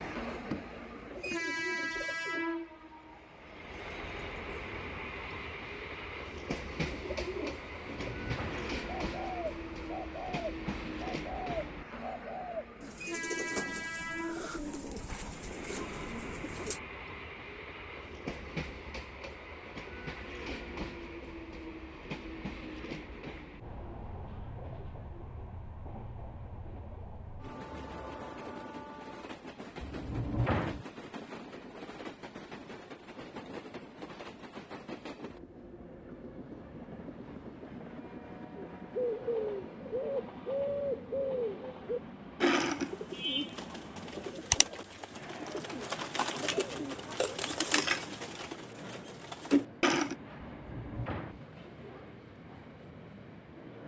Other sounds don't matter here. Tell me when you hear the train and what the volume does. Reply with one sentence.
The train can be heard from 0.0 to 53.8 s, getting quieter.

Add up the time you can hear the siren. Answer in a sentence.
The siren can't be heard in this clip.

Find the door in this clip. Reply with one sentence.
The door can be heard from 7.8 to 8.8 s, from 29.8 to 30.9 s and from 50.4 to 51.5 s.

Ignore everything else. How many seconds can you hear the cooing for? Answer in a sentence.
The cooing can be heard for 24 seconds in total.